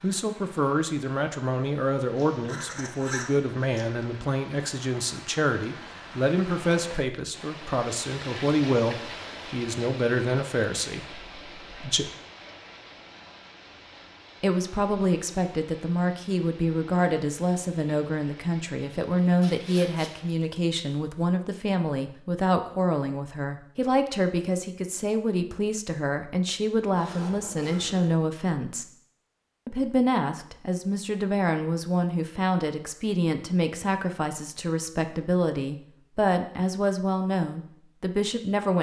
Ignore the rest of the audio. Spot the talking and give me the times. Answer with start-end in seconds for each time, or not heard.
0.0-12.1, 14.4-28.9, 29.6-38.7.